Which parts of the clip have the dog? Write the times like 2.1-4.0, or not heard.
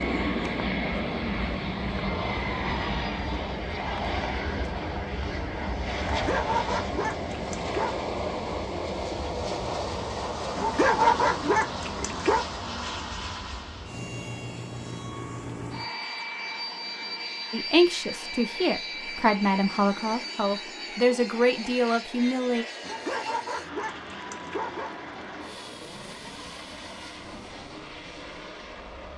6.0-8.1, 10.6-12.4, 22.8-24.9.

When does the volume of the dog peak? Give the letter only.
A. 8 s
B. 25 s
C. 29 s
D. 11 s
D.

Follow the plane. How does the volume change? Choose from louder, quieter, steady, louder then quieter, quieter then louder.
quieter.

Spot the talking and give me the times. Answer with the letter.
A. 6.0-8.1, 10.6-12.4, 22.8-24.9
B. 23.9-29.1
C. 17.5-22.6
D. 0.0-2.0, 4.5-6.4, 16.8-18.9
C.